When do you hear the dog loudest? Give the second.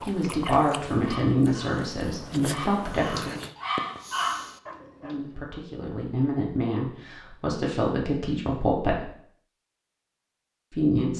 4 s.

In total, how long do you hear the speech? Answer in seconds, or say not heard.
8 s.